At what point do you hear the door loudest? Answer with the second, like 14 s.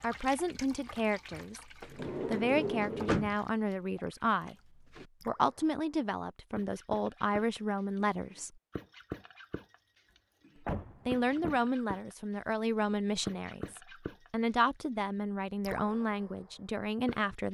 3 s.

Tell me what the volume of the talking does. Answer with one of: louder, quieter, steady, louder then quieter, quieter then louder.
steady.